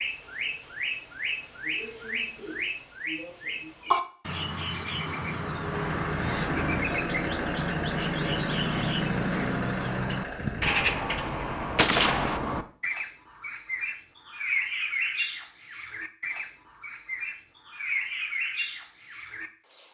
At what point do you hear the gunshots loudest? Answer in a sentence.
The volume of the gunshots peaks at 12 seconds.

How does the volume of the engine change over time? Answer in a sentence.
The volume of the engine stays about the same.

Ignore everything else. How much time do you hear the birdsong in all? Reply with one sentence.
The birdsong can be heard for 20 seconds in total.